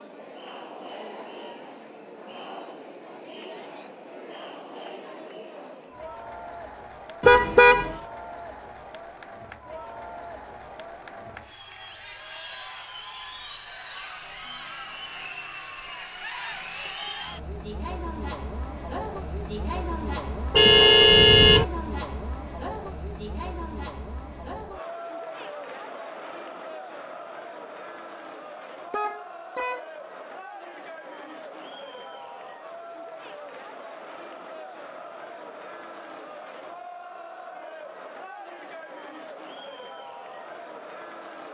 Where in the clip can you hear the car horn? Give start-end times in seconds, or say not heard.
7.2-8.0, 20.5-21.6, 28.9-29.9.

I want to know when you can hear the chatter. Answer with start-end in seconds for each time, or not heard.
0.0-41.5.